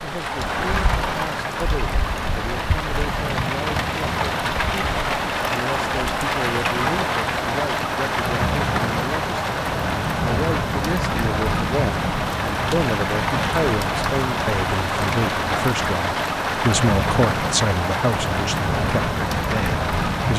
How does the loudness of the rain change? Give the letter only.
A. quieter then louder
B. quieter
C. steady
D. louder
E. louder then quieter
C.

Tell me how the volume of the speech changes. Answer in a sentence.
The loudness of the speech goes up.